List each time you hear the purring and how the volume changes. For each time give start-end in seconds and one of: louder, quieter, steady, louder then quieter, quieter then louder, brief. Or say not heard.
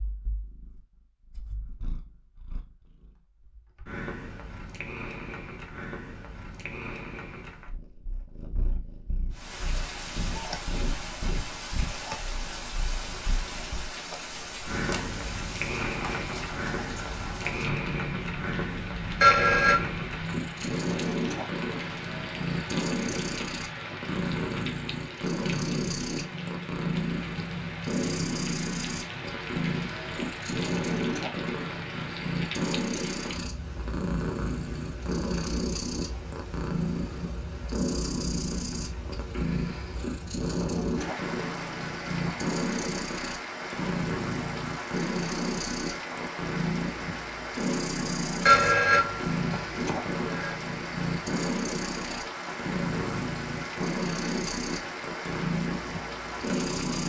0.0-57.0 louder.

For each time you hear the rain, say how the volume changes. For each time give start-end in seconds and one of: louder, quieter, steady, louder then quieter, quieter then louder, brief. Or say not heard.
9.3-57.0 steady.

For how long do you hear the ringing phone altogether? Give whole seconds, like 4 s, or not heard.
3 s.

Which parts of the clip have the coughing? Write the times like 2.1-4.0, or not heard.
not heard.